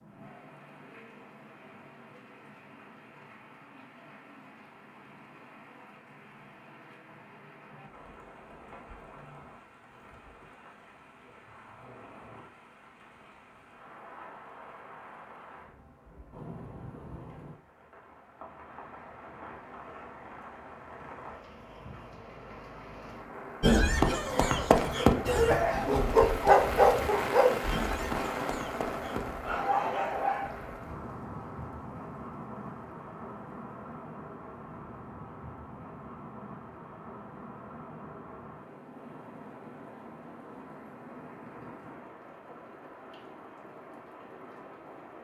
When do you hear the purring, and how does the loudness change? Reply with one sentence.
The purring can't be heard in this clip.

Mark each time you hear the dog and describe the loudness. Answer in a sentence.
The dog can be heard from 23.6 to 30.8 s, getting quieter then louder.